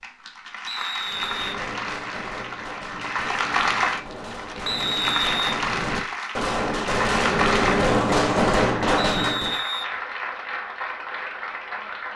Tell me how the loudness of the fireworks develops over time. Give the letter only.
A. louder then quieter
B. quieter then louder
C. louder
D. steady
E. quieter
C.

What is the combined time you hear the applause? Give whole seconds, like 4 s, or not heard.
12 s.